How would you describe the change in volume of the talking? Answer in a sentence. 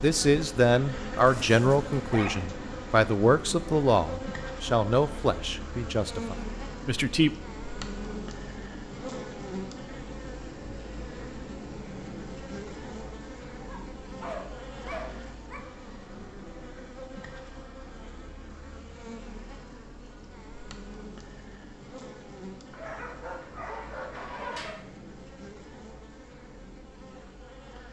The loudness of the talking goes down.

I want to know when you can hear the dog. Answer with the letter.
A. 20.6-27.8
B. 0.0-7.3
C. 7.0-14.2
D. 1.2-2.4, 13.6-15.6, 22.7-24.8
D.